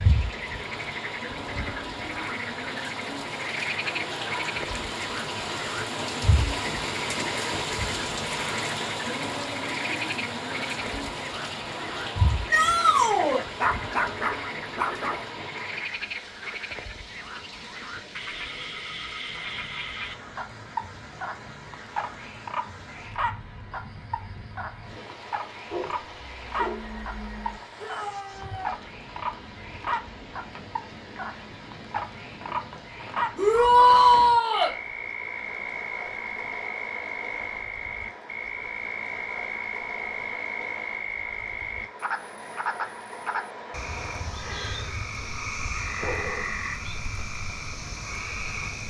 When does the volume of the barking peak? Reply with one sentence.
The loudest moment of the barking is at 14 seconds.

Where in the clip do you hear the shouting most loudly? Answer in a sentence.
The volume of the shouting peaks at 34 seconds.